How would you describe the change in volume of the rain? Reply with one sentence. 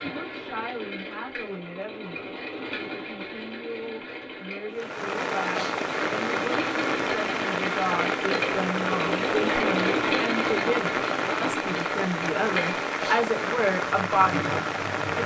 The volume of the rain stays about the same.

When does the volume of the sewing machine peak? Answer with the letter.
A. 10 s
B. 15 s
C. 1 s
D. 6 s
A.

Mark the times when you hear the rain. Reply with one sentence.
You can hear the rain from 4.7 to 15.2 s.